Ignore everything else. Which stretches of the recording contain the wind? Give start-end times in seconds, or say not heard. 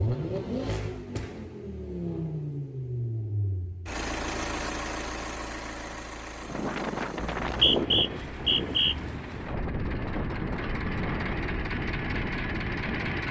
6.4-13.2.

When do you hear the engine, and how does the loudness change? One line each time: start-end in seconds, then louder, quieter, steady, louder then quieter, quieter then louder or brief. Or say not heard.
0.0-13.2 quieter then louder.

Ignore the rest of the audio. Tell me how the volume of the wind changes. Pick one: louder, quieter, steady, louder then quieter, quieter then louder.
quieter.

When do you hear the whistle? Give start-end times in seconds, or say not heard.
7.2-8.9.